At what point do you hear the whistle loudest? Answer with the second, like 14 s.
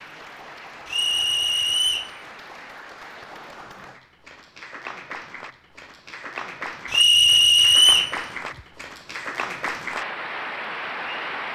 8 s.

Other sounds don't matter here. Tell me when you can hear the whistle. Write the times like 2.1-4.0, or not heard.
0.8-2.1, 6.9-8.2.